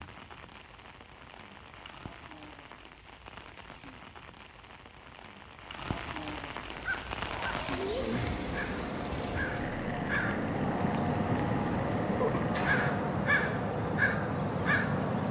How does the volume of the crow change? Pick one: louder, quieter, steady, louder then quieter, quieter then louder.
louder.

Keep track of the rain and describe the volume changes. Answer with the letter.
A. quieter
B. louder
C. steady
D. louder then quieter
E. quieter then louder
D.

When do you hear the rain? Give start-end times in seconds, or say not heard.
0.0-12.6.